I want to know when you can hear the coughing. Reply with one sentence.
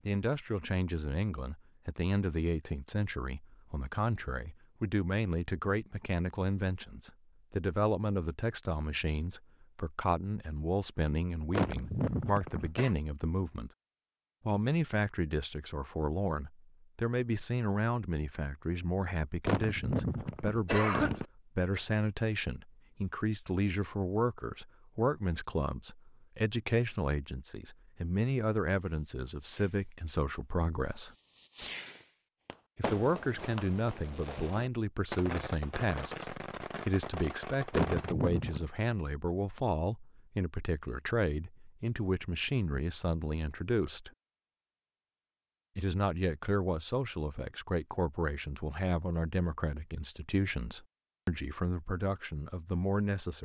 The coughing can be heard from 11.5 to 12.9 s, from 19.4 to 21.2 s and from 37.7 to 38.6 s.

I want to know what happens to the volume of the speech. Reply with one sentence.
The volume of the speech stays about the same.